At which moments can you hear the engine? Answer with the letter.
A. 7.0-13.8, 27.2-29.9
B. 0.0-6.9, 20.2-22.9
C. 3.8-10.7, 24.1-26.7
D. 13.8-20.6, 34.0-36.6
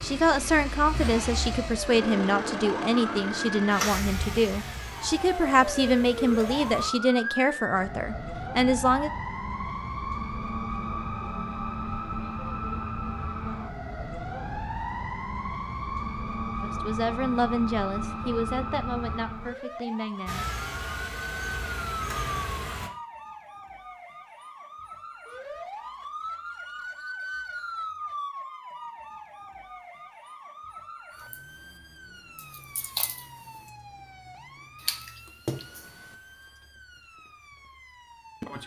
B.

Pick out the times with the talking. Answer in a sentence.
The talking can be heard from 0.0 to 9.1 s and from 16.6 to 20.5 s.